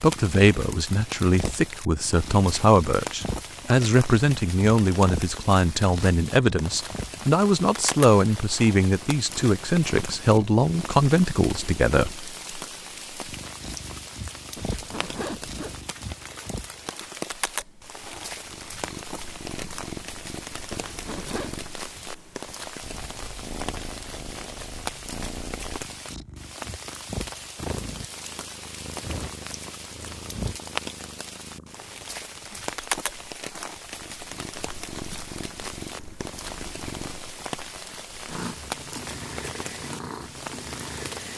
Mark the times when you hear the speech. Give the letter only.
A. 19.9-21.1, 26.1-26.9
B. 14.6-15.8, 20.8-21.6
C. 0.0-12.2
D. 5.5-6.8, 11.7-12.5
C.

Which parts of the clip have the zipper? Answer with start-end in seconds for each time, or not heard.
14.6-15.8, 20.8-21.6.